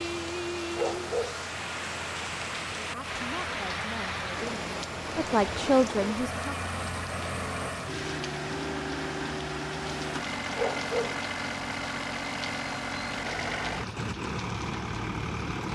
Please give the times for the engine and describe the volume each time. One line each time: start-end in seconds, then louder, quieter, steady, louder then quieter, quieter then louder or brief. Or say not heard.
0.0-15.7 louder.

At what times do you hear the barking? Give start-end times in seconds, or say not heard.
0.8-1.4, 10.6-11.2.